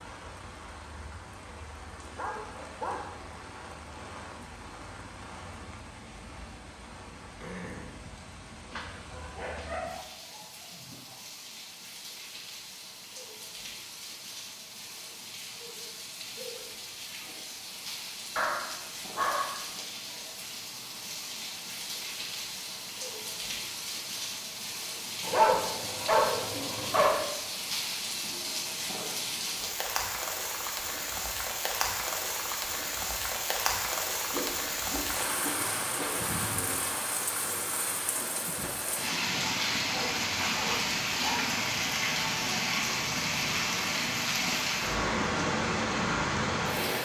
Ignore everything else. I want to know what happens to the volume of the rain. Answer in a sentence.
The volume of the rain goes up.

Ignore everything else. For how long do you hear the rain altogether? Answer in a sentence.
You can hear the rain for 47 seconds altogether.